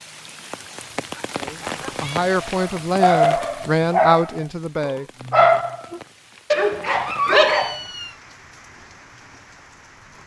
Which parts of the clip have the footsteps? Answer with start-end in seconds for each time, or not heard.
not heard.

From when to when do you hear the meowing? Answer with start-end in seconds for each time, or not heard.
1.4-2.2, 7.5-8.2.